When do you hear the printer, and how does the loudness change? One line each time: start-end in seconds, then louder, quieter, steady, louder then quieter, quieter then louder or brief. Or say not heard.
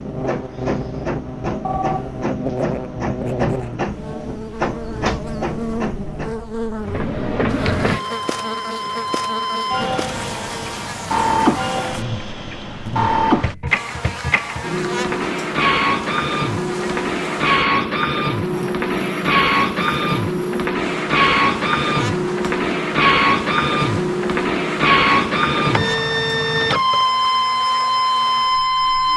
0.0-29.1 louder.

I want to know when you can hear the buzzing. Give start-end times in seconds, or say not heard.
0.0-29.1.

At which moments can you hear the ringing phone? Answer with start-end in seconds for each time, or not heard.
1.6-2.2.